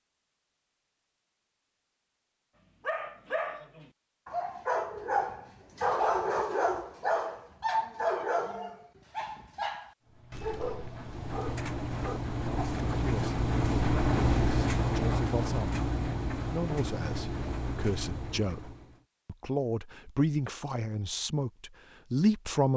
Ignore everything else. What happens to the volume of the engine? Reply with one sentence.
The volume of the engine goes up, then down.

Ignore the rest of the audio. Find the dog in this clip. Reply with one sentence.
You can hear the dog from 2.8 to 12.7 s.